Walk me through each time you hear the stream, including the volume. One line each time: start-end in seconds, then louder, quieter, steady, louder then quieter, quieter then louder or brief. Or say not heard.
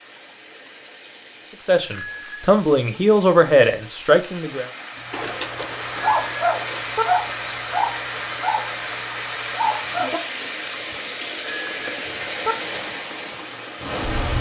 0.0-14.3 louder.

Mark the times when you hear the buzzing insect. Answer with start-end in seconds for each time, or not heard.
not heard.